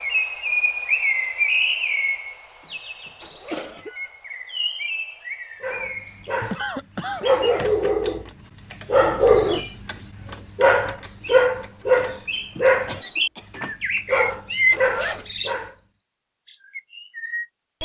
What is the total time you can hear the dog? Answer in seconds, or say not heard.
10 s.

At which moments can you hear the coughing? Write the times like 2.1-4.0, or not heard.
2.6-3.9, 6.5-7.2, 12.8-13.6.